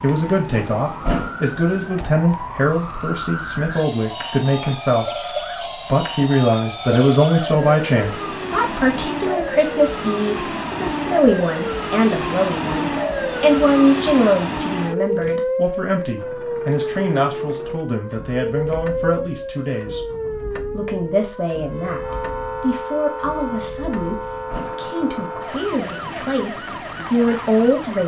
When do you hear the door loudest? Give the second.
1 s.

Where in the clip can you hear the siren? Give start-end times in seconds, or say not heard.
0.0-28.0.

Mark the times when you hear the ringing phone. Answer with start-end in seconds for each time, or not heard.
not heard.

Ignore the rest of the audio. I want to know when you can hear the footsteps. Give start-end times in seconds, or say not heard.
not heard.